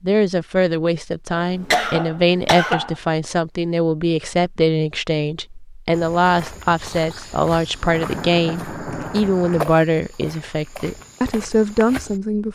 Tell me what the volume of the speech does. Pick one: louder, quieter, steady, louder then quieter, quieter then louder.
steady.